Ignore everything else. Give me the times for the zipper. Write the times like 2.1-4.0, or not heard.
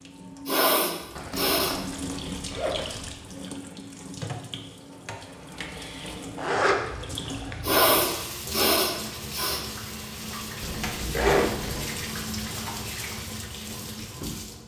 1.1-3.1, 6.3-7.7, 10.6-11.9.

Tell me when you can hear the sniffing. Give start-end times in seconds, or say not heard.
0.5-1.8, 7.6-9.6.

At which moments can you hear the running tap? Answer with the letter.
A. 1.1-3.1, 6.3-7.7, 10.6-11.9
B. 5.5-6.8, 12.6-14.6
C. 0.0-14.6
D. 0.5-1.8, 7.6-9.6
C.